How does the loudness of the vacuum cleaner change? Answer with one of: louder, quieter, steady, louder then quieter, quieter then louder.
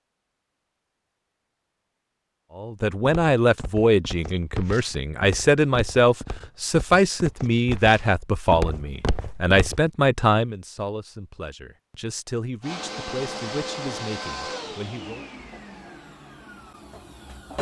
quieter.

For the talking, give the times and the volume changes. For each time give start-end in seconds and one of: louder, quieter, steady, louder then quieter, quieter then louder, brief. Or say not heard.
2.5-15.2 quieter.